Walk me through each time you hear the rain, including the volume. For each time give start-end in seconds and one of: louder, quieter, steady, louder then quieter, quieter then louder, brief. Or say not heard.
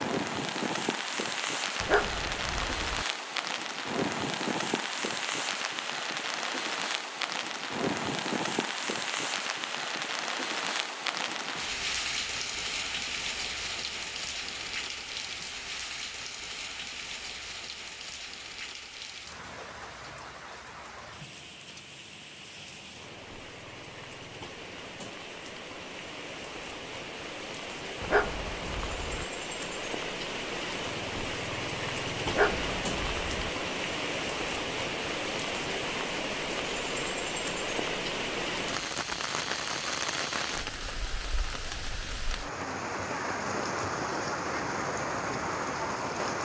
0.0-46.3 quieter then louder.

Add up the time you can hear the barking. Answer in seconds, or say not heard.
4 s.